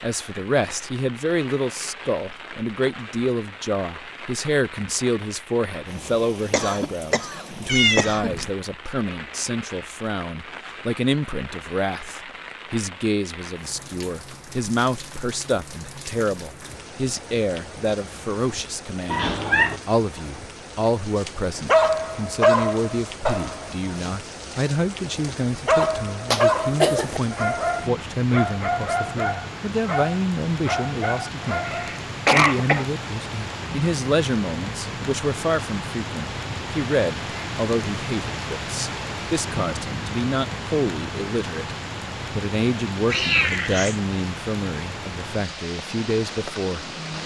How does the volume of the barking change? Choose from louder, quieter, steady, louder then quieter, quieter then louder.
quieter.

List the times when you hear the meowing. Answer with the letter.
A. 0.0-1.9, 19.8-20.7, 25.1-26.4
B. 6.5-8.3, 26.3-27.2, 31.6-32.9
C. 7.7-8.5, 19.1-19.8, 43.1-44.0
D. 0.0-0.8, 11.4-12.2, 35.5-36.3
C.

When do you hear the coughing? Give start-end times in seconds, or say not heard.
6.5-8.3, 26.3-27.2, 31.6-32.9.